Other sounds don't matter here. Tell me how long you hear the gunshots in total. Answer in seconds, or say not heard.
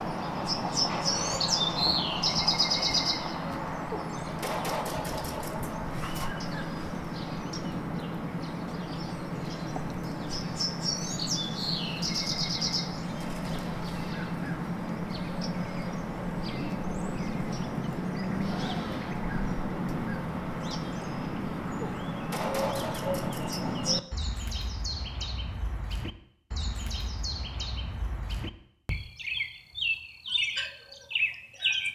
4 s.